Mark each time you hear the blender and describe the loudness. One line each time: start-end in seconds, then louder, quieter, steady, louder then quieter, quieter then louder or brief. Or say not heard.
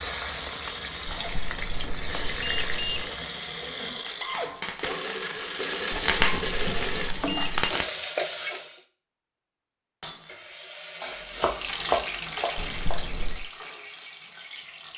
0.0-7.1 louder.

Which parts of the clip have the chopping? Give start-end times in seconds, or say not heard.
11.1-12.9.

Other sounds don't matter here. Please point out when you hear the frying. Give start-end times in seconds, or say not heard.
0.0-8.8, 10.2-14.9.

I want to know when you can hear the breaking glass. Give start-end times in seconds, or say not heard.
10.0-10.5.